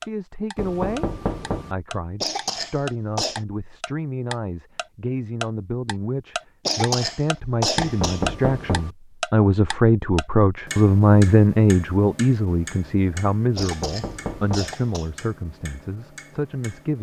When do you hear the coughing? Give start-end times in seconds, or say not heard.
2.2-3.4, 6.7-8.2, 13.6-15.1.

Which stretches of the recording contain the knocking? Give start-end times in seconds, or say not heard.
0.6-1.8, 7.8-8.9, 13.6-14.8.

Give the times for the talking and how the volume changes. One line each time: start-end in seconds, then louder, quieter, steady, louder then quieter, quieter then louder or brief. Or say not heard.
0.0-1.1 brief
1.7-16.9 louder then quieter.